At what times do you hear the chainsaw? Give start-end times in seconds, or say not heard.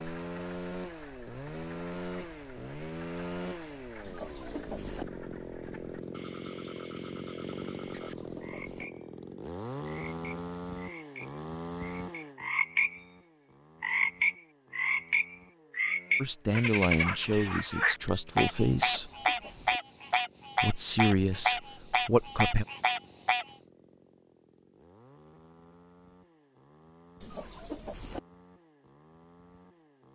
0.0-30.1.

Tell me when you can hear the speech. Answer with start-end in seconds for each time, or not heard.
16.2-19.1, 20.6-22.6.